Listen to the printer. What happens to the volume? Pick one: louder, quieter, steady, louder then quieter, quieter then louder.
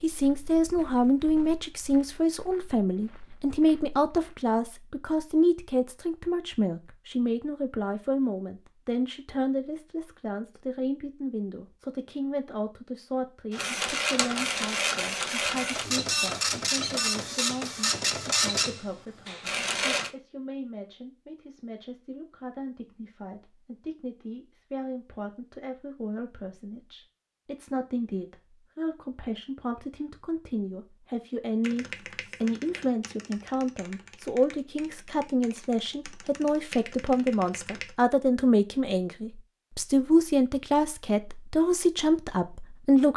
steady.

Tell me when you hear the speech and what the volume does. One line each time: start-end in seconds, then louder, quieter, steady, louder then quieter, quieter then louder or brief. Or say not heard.
0.0-43.1 quieter then louder.